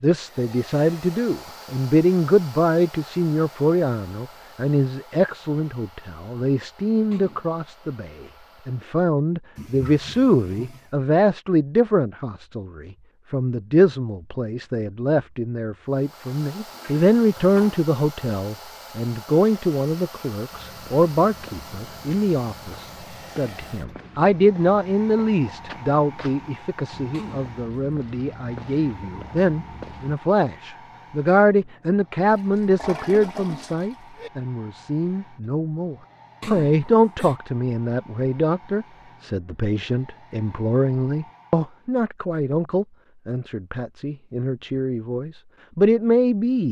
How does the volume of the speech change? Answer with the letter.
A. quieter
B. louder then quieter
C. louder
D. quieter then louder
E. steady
E.